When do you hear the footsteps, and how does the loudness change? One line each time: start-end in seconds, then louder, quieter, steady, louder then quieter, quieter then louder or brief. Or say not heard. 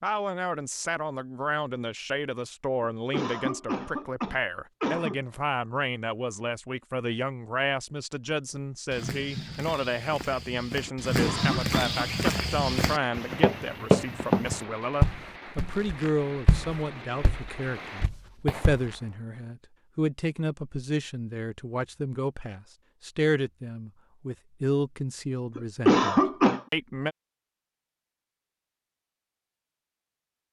8.9-18.9 louder then quieter.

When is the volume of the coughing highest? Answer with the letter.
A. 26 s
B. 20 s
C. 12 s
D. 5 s
A.